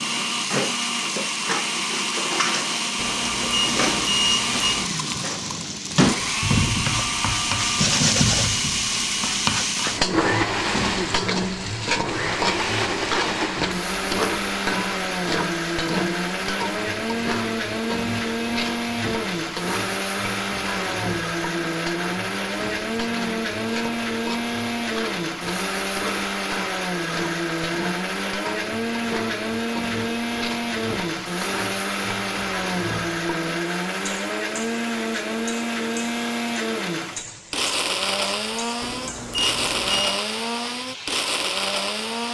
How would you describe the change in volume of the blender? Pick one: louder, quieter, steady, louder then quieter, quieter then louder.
steady.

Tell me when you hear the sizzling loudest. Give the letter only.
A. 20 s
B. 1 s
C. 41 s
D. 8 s
D.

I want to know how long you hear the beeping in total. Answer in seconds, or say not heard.
3 s.